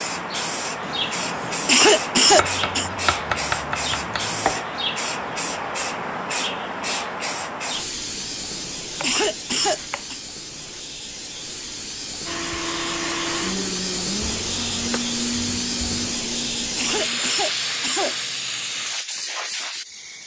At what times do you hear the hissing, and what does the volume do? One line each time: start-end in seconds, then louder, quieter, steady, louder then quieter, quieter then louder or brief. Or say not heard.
0.0-20.2 quieter then louder.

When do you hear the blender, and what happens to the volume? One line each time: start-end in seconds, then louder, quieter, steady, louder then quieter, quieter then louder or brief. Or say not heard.
12.2-17.2 quieter.